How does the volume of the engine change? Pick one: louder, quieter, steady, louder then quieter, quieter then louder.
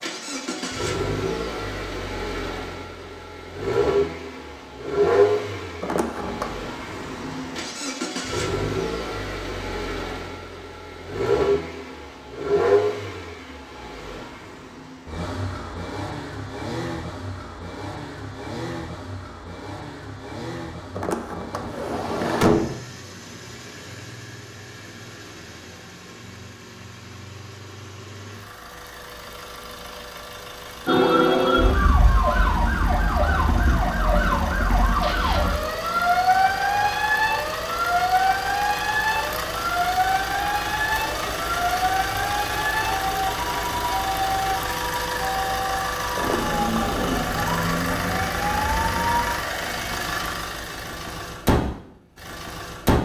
quieter then louder.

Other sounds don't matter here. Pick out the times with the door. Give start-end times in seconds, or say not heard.
5.8-6.5, 20.9-22.8, 46.1-47.3.